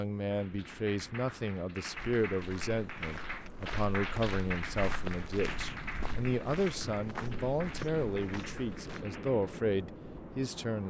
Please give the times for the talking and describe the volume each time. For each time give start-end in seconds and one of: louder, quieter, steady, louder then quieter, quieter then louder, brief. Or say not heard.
0.0-10.8 steady.